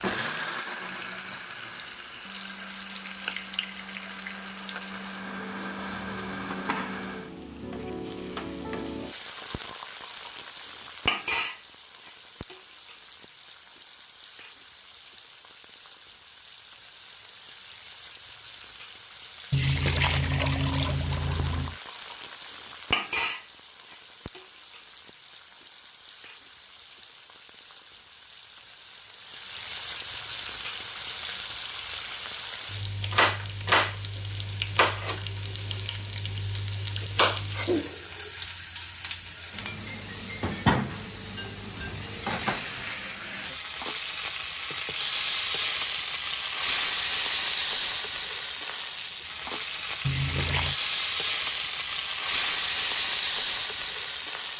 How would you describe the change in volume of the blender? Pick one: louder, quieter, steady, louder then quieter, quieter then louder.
quieter then louder.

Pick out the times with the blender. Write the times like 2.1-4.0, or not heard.
0.0-7.3.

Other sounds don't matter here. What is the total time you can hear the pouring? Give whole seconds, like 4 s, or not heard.
3 s.